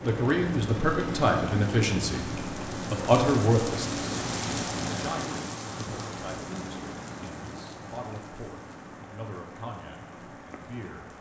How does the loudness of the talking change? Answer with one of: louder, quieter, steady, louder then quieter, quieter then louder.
quieter.